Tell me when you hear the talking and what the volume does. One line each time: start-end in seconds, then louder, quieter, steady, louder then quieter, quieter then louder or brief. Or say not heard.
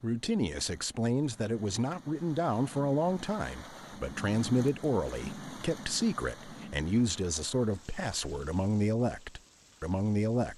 0.0-10.5 steady.